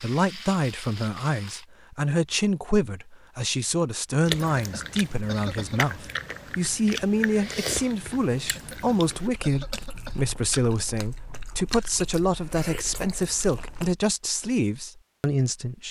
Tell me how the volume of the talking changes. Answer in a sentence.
The loudness of the talking stays about the same.